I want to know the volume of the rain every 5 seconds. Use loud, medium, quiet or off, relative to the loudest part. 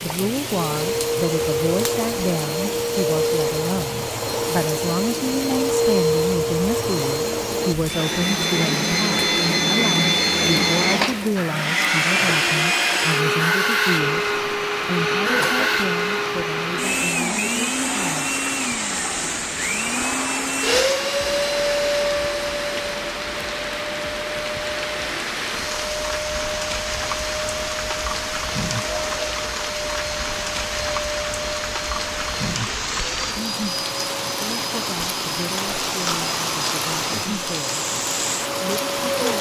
medium, medium, medium, medium, loud, loud, loud, loud.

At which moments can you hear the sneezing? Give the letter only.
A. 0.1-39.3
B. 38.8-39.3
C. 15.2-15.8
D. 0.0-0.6
C.